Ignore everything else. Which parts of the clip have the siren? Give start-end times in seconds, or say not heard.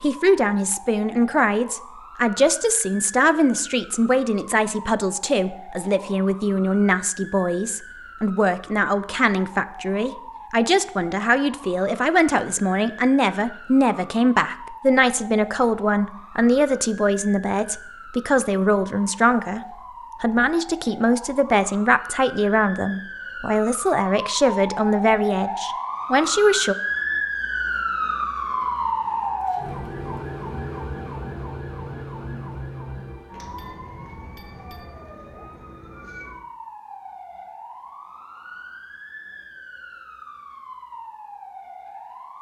0.0-42.3.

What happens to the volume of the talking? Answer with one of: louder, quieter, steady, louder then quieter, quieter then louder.
steady.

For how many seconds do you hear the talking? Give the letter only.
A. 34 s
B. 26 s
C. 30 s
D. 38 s
B.